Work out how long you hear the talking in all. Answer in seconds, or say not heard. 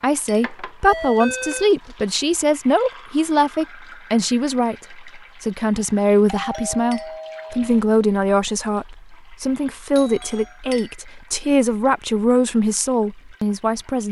14 s.